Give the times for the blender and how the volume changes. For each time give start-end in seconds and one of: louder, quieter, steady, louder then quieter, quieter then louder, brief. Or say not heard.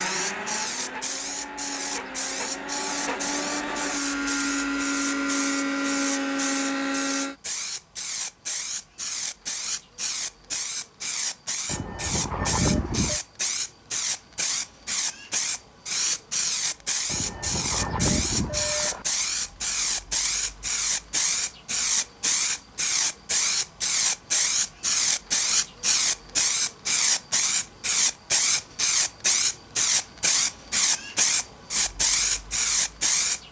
0.0-7.3 louder.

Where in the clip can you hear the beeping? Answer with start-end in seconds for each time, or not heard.
11.7-13.2, 17.1-19.1.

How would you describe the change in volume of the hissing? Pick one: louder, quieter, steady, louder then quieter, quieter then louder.
louder.